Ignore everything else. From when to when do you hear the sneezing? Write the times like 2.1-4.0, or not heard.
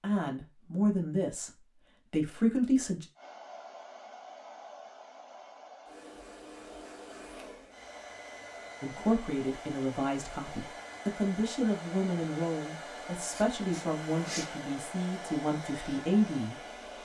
13.3-14.5.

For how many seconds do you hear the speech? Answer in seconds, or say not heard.
11 s.